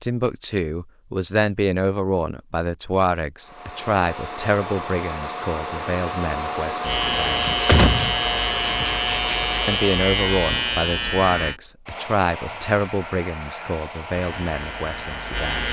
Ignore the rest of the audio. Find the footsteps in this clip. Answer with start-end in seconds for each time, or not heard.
not heard.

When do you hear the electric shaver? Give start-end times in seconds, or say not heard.
6.8-11.6, 14.2-15.6.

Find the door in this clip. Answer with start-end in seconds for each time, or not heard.
7.0-8.8.